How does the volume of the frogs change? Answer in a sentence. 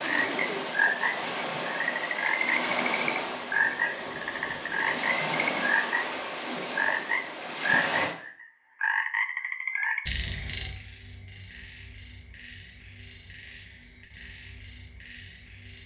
The loudness of the frogs goes down.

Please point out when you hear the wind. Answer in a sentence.
The wind can be heard from 0.0 to 8.2 s.